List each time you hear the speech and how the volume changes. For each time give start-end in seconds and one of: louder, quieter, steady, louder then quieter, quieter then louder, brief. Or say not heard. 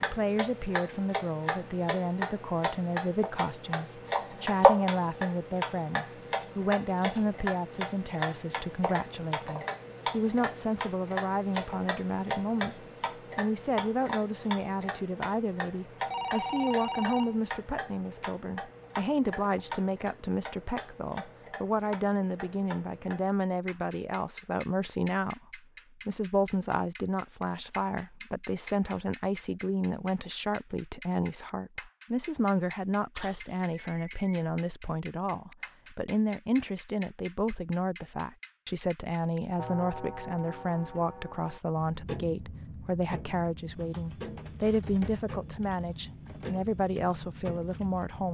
0.0-48.2 steady.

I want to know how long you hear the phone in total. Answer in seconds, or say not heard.
3 s.